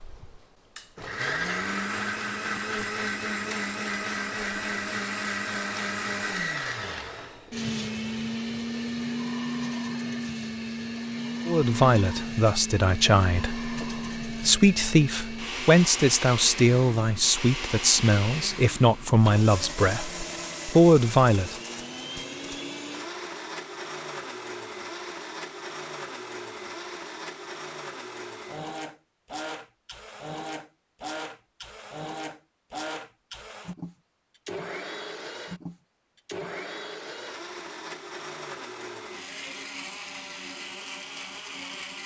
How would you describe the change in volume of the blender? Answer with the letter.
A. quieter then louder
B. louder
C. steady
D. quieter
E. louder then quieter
D.